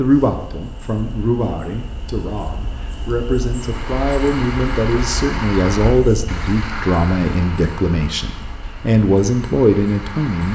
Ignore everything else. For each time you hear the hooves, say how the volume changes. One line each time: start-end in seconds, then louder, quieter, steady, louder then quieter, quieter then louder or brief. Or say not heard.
not heard.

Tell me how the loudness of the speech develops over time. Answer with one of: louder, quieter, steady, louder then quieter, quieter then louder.
louder.